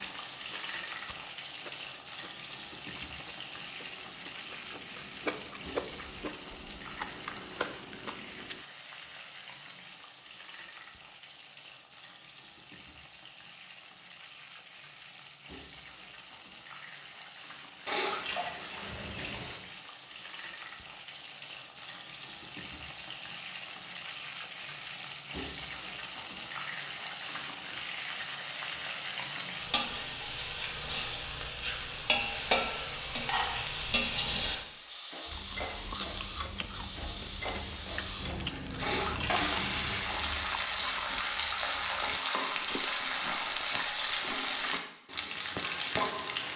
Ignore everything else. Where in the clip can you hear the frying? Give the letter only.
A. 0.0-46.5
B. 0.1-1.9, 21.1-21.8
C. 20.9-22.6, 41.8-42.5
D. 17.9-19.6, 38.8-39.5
A.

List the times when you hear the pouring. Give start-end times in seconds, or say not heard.
17.9-19.6, 38.8-39.5.